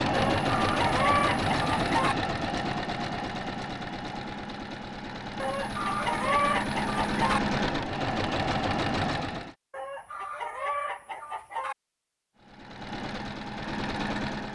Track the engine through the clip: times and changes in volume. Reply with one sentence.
You can hear the engine from 0.0 to 9.6 s, getting quieter then louder; and briefly from 12.3 to 14.5 s.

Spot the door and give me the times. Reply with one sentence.
The door can't be heard in this clip.